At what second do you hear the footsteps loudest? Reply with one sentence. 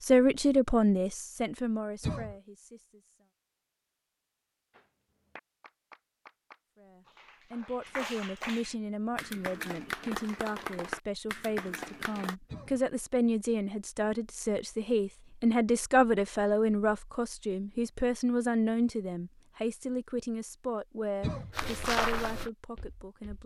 The loudest moment of the footsteps is at 22 seconds.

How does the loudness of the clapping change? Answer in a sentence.
The loudness of the clapping goes up.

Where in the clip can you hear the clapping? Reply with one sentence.
You can hear the clapping from 4.7 to 12.3 s.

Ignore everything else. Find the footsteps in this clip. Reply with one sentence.
The footsteps can be heard from 21.6 to 23.4 s.